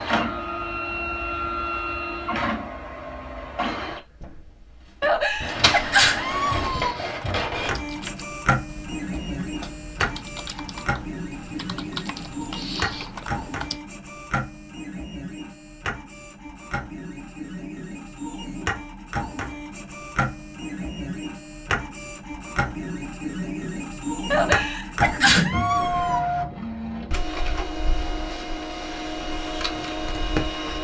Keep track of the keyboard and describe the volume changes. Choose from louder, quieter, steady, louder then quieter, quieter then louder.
quieter then louder.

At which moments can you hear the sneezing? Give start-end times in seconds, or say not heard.
5.0-7.0, 24.3-26.2.